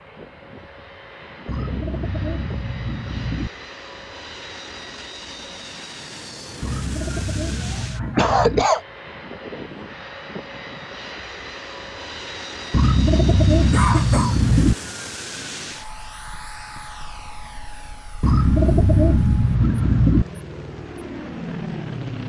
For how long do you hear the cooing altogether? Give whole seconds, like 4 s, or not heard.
8 s.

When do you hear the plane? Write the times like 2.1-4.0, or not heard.
0.0-22.2.